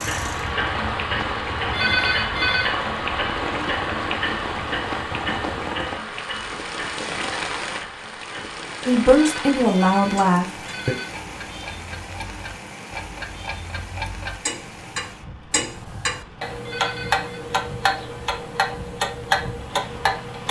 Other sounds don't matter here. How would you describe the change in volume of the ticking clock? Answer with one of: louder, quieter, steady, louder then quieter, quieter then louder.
quieter then louder.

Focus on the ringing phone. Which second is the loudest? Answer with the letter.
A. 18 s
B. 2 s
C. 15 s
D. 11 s
B.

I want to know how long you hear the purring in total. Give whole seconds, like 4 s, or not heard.
not heard.